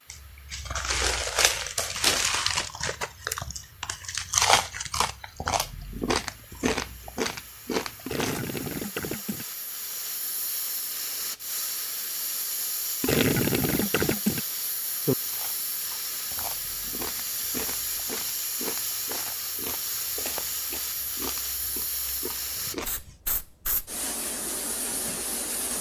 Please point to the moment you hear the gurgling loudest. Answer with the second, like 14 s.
13 s.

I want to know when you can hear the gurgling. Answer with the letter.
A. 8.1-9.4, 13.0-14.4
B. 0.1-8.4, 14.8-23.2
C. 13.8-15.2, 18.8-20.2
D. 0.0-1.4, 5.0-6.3
A.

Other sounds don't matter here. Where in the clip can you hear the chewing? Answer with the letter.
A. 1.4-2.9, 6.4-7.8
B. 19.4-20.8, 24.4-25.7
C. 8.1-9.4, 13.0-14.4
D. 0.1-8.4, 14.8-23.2
D.